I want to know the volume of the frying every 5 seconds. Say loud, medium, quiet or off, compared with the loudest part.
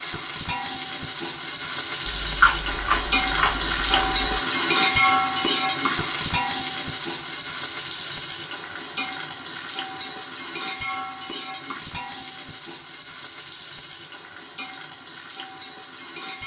loud, loud, medium, quiet.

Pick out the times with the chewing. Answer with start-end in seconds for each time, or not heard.
2.0-4.2.